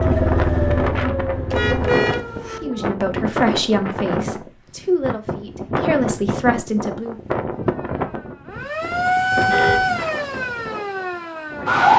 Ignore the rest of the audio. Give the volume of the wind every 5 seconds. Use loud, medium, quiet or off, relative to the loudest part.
loud, loud, medium.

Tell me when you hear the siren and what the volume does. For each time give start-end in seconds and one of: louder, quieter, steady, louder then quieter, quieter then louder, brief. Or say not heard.
0.0-3.0 brief
7.6-11.9 louder then quieter.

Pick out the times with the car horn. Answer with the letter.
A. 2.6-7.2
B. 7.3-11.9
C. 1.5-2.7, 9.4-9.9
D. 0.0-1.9
C.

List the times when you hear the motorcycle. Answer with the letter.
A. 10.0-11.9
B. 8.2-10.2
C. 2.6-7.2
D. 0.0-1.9
D.